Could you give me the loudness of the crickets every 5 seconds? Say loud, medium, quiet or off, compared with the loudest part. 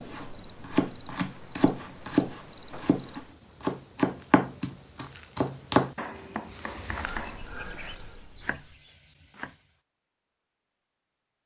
medium, loud, off.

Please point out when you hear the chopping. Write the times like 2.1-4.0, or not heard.
0.0-9.6.